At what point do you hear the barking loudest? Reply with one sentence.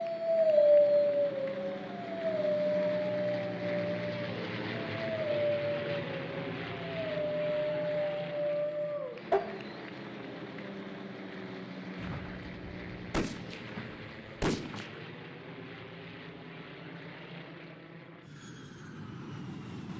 The volume of the barking peaks at 1 second.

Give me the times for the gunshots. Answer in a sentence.
The gunshots can be heard from 11.9 to 15.0 s.